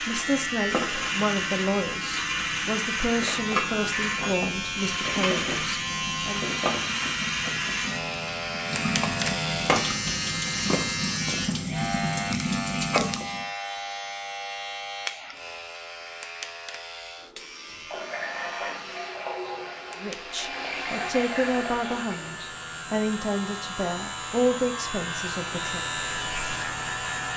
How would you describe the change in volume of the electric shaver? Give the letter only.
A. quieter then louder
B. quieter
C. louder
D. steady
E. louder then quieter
A.